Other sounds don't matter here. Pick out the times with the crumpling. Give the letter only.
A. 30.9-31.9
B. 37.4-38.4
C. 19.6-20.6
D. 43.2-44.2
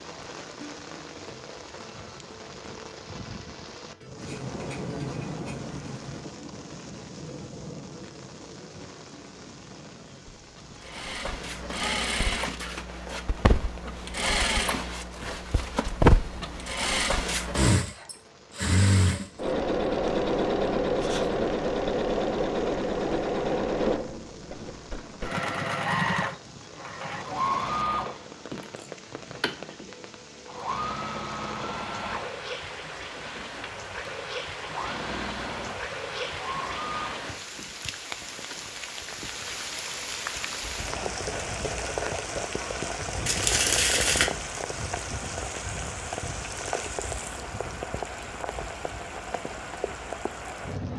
D.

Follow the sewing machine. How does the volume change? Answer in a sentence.
The loudness of the sewing machine goes down.